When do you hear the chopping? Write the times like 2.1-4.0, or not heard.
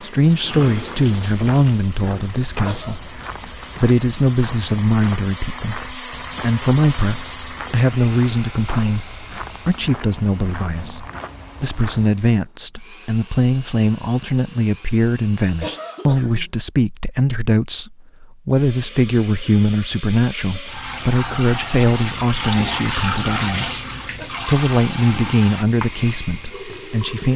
not heard.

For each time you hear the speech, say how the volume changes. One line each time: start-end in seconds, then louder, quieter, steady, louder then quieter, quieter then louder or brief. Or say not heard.
0.0-23.9 steady
24.4-27.3 brief.